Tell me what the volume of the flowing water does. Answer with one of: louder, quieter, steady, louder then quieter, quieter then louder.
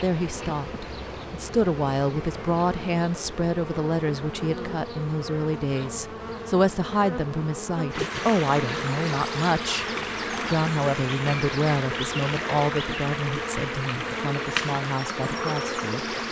steady.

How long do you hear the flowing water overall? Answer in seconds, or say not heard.
8 s.